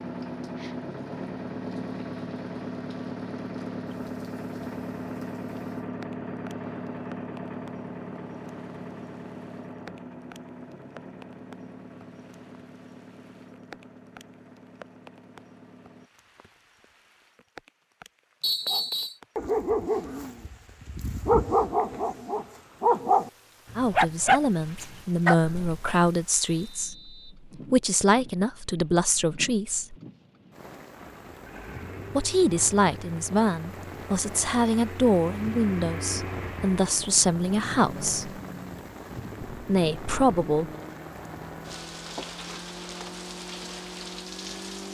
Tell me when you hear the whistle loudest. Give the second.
19 s.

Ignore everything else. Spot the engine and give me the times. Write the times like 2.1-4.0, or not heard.
0.0-16.1, 30.9-44.8.